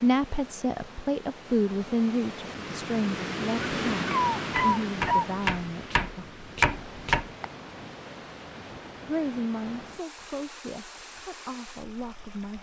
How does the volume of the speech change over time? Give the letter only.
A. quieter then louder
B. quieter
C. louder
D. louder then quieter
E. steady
B.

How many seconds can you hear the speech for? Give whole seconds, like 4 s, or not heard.
10 s.